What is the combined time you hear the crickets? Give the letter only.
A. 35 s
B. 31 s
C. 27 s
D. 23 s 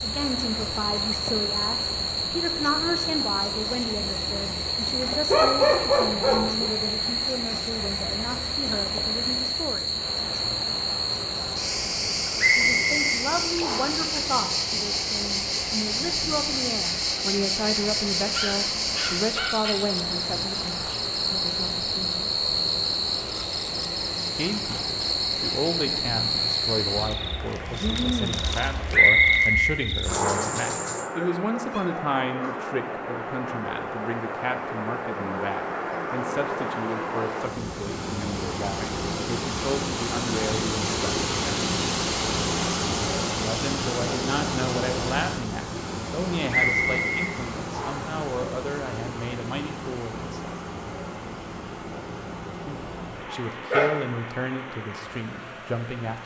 B.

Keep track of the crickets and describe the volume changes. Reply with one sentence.
The volume of the crickets stays about the same.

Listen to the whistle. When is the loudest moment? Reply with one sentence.
The volume of the whistle peaks at 29 seconds.